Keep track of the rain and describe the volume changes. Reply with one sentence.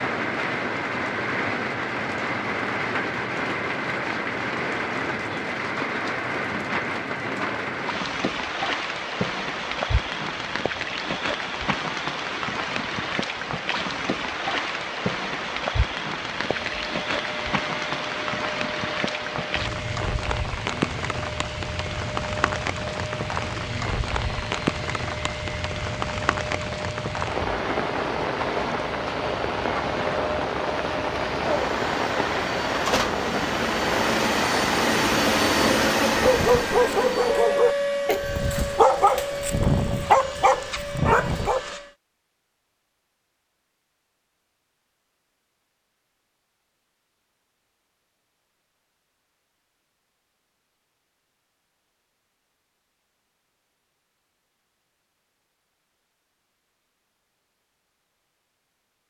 The loudness of the rain stays about the same.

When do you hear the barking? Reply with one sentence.
The barking can be heard from 36.0 to 41.8 s.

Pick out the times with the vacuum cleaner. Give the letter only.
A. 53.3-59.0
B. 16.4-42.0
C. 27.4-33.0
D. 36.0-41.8
B.